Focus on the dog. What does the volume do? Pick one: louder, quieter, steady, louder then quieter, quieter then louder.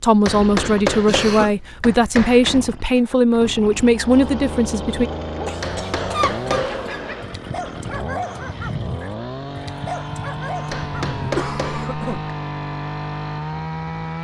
steady.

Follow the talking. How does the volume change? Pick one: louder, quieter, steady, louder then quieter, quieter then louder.
steady.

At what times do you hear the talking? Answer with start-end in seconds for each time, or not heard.
0.0-5.1.